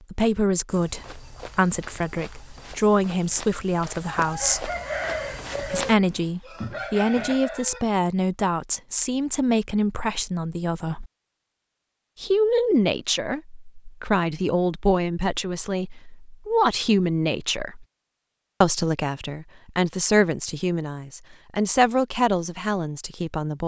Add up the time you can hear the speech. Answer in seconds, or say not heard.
21 s.